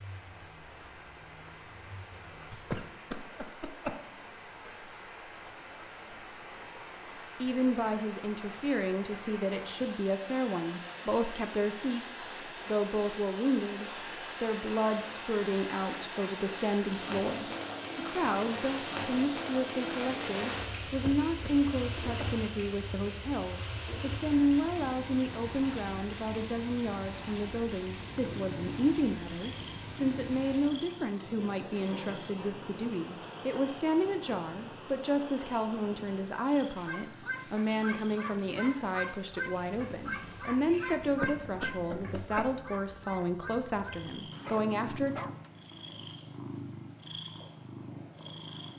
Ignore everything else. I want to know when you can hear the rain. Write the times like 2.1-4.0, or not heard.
0.0-40.8.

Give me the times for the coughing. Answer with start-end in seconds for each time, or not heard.
2.5-4.0, 20.9-22.4, 41.0-42.6.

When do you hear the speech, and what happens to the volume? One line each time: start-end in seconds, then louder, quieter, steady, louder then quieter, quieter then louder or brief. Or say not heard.
7.4-45.1 steady.